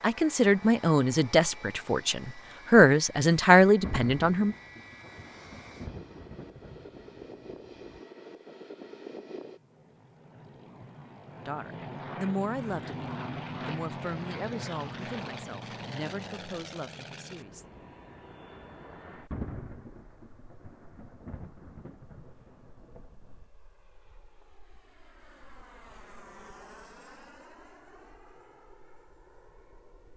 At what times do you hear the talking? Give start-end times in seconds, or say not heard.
0.0-4.5, 11.4-17.8.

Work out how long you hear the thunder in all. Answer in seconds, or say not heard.
8 s.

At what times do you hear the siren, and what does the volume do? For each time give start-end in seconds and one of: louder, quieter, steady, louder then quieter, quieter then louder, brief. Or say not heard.
not heard.